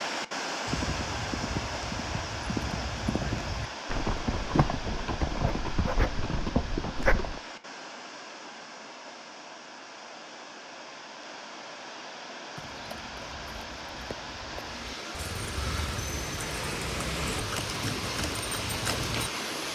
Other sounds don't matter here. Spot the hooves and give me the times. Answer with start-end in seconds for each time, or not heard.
0.7-7.4, 12.6-19.3.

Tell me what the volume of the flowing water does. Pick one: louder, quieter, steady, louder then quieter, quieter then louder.
quieter then louder.